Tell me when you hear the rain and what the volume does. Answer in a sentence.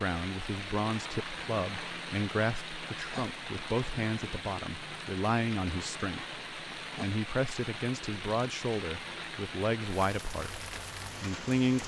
You can hear the rain from 0.0 to 11.8 s, at a steady volume.